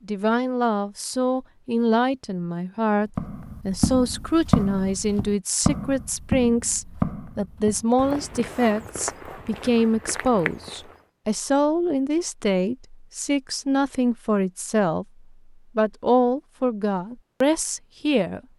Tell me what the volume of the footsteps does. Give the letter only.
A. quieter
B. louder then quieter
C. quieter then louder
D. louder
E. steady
A.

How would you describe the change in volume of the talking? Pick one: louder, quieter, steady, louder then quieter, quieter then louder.
steady.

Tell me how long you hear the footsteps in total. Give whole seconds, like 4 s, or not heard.
8 s.